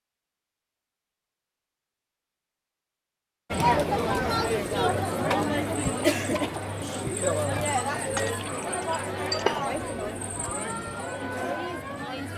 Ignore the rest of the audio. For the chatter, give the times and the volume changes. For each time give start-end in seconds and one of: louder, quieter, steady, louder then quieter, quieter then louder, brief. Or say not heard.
3.5-12.3 quieter.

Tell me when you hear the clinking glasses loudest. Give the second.
9 s.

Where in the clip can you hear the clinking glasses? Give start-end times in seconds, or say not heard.
8.2-9.8.